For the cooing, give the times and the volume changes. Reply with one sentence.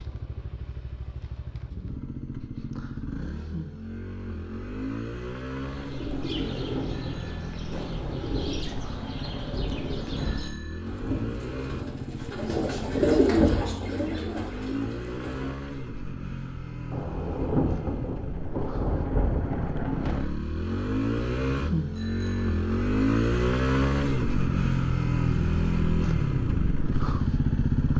You can hear the cooing from 5.6 to 15.6 s, getting louder.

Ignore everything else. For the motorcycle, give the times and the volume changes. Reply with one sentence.
The motorcycle can be heard from 0.0 to 27.9 s, getting louder.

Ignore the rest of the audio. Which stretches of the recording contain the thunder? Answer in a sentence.
The thunder can be heard from 6.1 to 10.4 s and from 16.9 to 20.2 s.